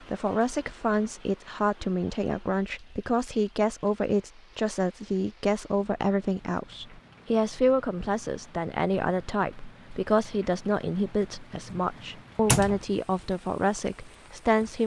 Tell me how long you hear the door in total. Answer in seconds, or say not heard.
2 s.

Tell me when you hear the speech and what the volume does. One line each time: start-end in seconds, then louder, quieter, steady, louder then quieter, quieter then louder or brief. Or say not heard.
0.1-14.8 steady.